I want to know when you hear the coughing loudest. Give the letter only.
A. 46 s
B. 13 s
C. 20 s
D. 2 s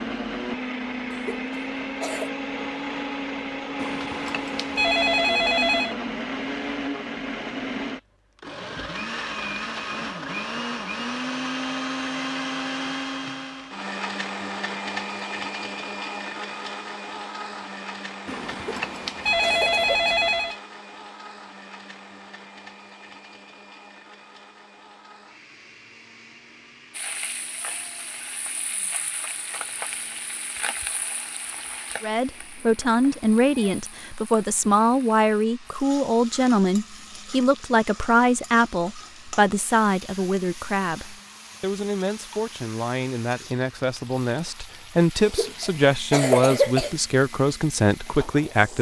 A.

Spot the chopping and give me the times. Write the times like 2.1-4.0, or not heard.
not heard.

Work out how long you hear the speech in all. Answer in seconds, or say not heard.
17 s.